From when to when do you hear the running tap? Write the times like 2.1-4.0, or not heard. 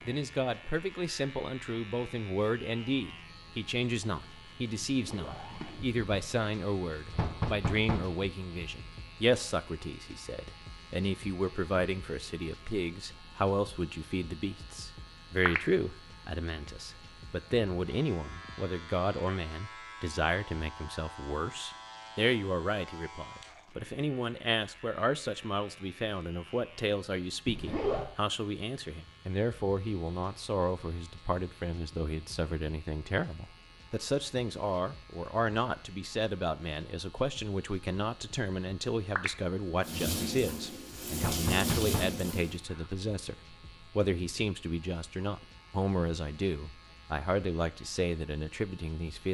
39.8-42.6.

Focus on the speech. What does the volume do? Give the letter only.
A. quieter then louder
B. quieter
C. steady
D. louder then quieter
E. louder
C.